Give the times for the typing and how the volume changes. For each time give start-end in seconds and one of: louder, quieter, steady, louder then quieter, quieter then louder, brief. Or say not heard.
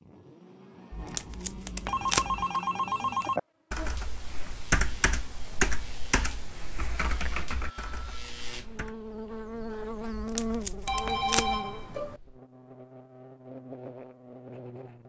3.4-8.9 louder then quieter.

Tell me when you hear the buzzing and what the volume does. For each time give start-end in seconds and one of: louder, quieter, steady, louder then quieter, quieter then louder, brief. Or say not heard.
0.0-15.0 louder then quieter.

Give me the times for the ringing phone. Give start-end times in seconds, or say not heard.
1.9-3.4, 7.6-8.4, 10.8-12.2.